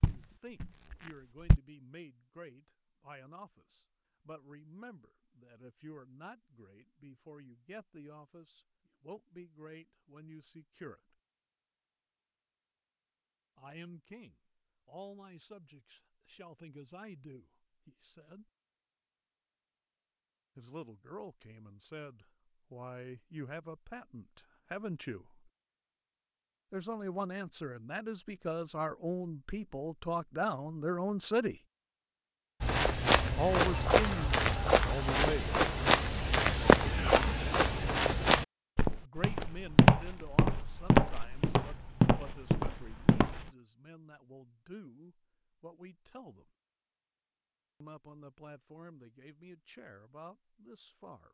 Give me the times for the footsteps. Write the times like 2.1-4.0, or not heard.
0.0-1.6, 32.6-43.5.